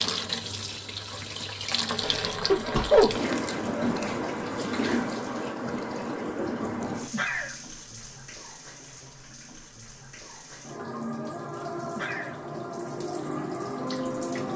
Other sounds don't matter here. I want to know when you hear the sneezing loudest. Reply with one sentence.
The loudest moment of the sneezing is at 3 seconds.